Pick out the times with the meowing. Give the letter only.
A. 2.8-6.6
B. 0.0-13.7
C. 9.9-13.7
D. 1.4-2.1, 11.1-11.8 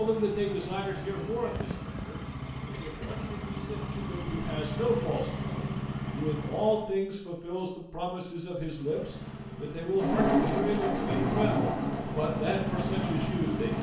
D.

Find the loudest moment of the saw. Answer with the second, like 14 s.
10 s.